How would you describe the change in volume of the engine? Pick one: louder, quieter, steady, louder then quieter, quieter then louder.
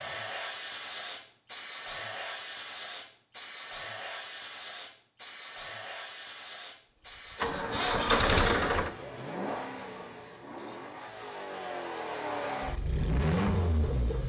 quieter then louder.